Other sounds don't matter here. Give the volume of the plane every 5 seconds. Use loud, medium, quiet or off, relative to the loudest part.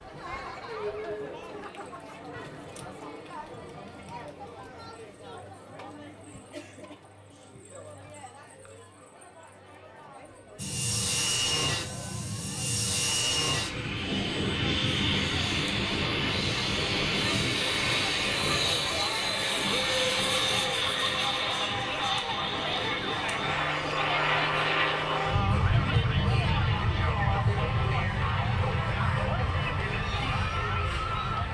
off, off, loud, loud, loud, loud, medium.